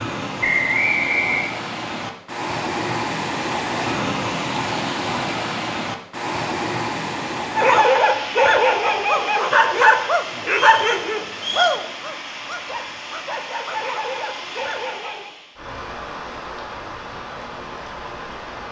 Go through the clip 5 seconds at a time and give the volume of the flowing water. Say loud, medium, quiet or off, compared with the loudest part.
loud, loud, medium, medium.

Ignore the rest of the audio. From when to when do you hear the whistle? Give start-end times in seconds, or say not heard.
0.4-1.4, 10.6-11.8.